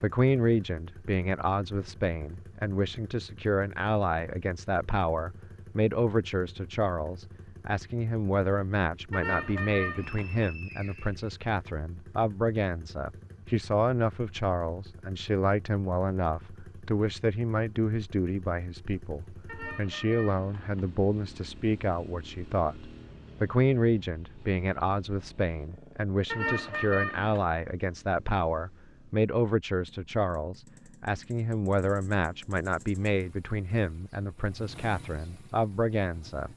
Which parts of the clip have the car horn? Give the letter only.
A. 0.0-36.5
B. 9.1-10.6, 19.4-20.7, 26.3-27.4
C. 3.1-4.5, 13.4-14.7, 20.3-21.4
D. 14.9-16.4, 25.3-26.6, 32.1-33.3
B.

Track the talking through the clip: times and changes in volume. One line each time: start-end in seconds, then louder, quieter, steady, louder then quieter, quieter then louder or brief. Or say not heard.
0.0-36.5 steady.